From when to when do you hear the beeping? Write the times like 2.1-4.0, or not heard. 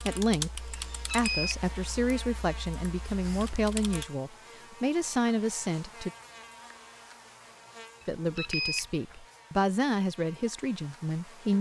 0.7-1.6, 8.0-9.2.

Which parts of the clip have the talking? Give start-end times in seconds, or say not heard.
0.1-6.1, 8.1-11.5.